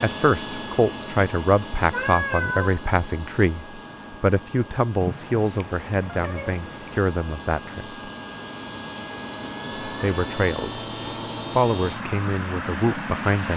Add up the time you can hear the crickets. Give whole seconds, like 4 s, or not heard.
not heard.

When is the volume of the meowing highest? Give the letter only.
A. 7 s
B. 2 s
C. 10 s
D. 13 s
B.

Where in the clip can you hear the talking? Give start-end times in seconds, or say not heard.
0.0-8.0, 9.8-10.8, 11.6-13.5.